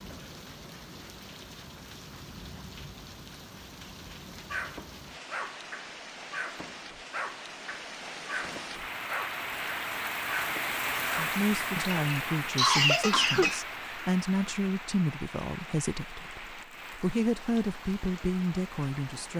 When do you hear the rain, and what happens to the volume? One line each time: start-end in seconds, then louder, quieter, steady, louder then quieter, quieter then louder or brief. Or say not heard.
0.0-19.3 louder then quieter.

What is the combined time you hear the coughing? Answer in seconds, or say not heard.
2 s.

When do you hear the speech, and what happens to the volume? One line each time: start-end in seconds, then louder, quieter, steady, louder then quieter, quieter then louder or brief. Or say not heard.
11.1-19.3 steady.